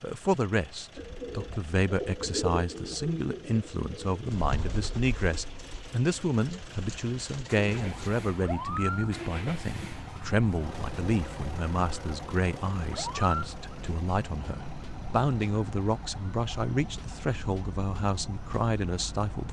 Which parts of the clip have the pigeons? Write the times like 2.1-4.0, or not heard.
0.9-8.1.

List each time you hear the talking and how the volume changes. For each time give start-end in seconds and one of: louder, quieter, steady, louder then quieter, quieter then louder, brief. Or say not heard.
0.0-19.4 steady.